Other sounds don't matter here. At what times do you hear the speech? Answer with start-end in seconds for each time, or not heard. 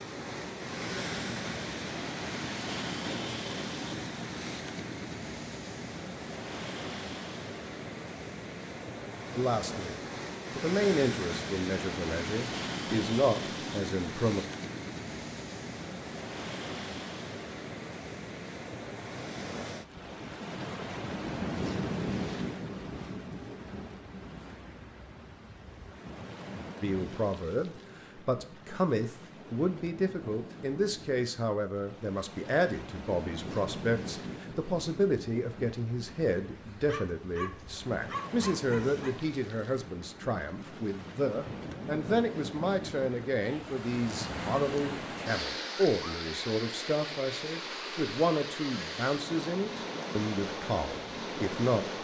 9.3-9.9, 10.6-14.4, 26.8-51.9.